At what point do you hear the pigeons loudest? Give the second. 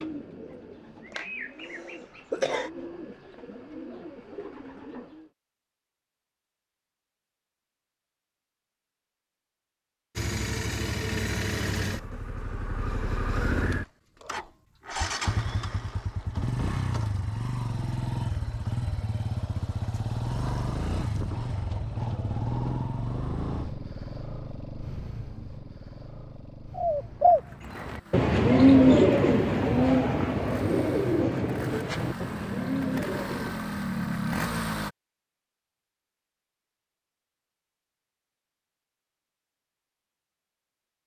29 s.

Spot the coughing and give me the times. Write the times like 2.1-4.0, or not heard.
1.1-2.7.